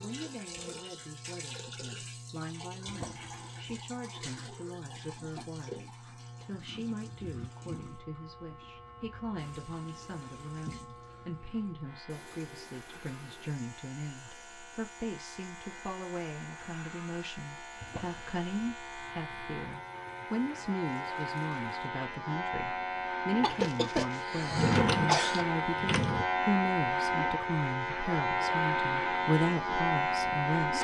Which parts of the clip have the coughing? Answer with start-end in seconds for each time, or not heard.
23.4-25.4.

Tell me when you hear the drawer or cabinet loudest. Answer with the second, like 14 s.
25 s.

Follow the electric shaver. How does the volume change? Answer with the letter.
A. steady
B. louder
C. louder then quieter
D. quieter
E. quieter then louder
B.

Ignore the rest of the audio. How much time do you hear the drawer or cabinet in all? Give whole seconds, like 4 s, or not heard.
4 s.